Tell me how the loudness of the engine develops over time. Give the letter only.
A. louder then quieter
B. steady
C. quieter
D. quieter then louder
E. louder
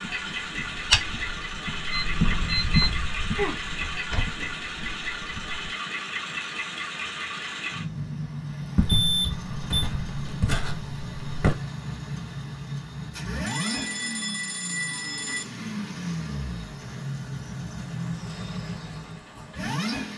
B.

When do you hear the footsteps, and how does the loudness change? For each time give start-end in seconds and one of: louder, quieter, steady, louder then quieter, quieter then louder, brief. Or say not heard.
0.0-5.8 quieter
8.8-11.6 brief.